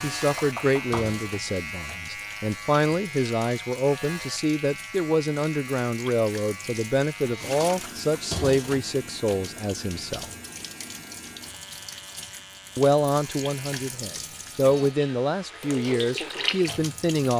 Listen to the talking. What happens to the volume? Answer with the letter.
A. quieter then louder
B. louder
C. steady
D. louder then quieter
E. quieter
C.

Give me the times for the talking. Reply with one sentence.
The talking can be heard from 0.0 to 10.2 s and from 12.8 to 17.3 s.